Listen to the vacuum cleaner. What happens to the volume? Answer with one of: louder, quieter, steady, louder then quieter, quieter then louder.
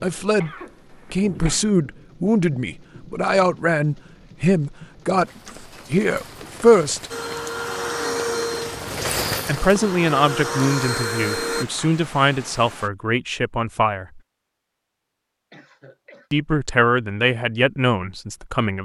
quieter then louder.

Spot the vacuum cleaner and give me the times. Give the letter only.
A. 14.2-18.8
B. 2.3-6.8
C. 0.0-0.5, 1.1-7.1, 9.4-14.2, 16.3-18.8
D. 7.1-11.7
D.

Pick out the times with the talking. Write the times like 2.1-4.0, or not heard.
0.0-0.5, 1.1-7.1, 9.4-14.2, 16.3-18.8.